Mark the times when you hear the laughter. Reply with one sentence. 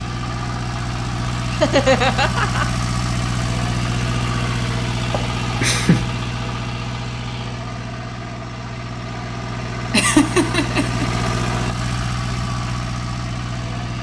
The laughter can be heard from 1.5 to 2.6 s, from 5.1 to 6.0 s and from 9.9 to 11.1 s.